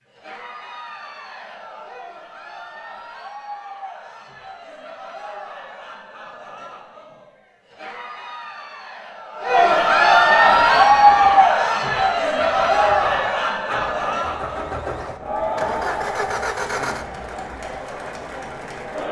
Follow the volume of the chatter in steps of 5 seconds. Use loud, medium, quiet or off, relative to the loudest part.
quiet, medium, loud, quiet.